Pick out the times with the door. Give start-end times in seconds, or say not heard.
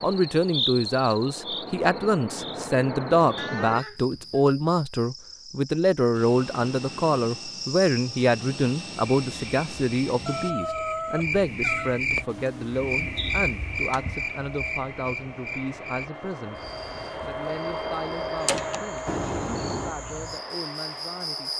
18.4-18.9.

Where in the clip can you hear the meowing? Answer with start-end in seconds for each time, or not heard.
3.4-4.4, 10.2-12.0, 19.1-19.9.